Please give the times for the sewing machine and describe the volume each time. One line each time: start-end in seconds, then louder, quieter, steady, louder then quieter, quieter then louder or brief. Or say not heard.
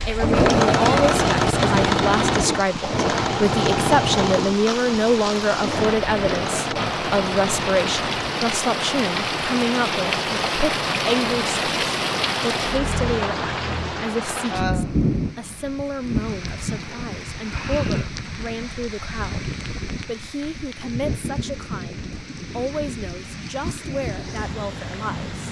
0.0-8.4 quieter.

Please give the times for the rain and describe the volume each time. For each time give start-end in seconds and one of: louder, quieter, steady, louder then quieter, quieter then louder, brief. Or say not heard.
0.0-25.4 louder then quieter.